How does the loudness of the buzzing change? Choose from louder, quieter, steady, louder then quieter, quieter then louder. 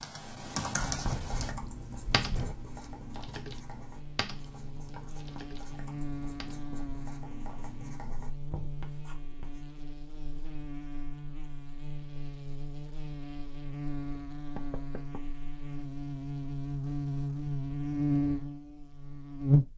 louder.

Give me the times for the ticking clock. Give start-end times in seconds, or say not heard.
not heard.